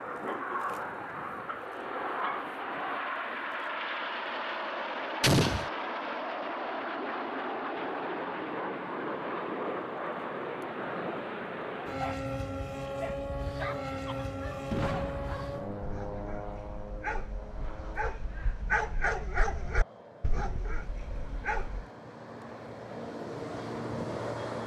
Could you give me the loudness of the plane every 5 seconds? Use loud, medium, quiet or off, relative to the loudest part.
loud, loud, loud, medium, medium.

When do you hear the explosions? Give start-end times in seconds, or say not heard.
5.2-5.7, 14.7-16.8.